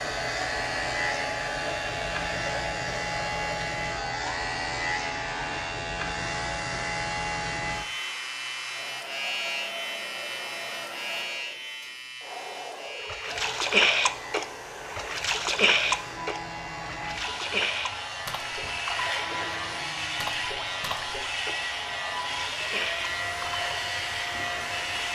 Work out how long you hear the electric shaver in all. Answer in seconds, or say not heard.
25 s.